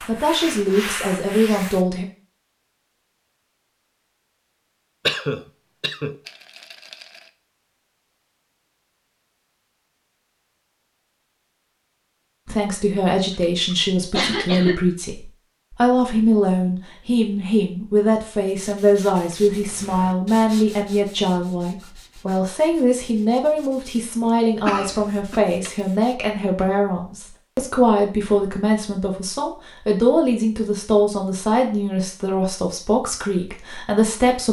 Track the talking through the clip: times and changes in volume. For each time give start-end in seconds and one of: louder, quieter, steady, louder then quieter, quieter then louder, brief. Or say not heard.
0.1-2.0 brief
12.4-34.4 steady.